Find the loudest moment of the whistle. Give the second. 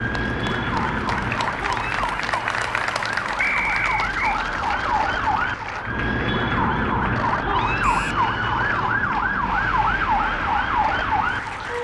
4 s.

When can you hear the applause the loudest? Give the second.
3 s.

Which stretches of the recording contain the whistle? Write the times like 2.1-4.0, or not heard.
3.4-4.4, 7.8-8.2.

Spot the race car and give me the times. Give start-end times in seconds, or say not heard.
not heard.